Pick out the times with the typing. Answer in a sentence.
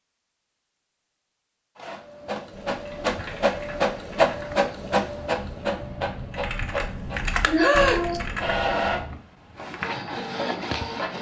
The typing can be heard from 2.5 to 9.2 s.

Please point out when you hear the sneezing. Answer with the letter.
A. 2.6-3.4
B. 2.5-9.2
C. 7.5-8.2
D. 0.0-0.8
C.